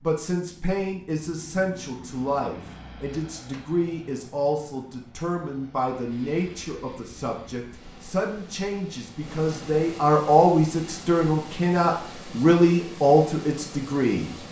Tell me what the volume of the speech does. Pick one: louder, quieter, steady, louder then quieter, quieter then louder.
louder.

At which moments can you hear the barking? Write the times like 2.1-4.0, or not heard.
not heard.